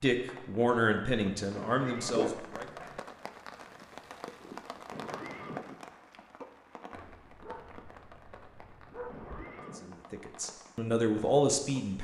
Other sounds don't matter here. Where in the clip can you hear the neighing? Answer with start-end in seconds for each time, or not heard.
1.5-2.3, 4.9-5.7, 9.1-9.9.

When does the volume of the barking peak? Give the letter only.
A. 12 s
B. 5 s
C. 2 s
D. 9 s
C.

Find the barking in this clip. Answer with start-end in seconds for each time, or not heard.
2.0-3.0, 6.9-9.3.